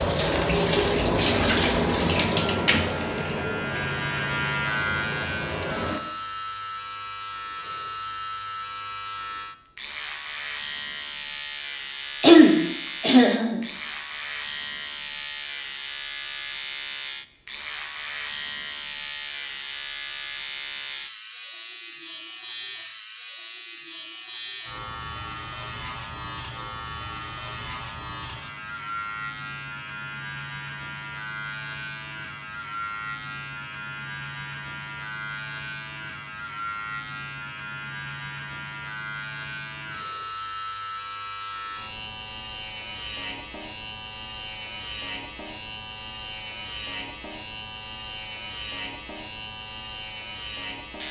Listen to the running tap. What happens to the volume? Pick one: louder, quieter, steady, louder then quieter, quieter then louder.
quieter.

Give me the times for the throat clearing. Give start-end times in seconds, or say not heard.
12.2-13.6.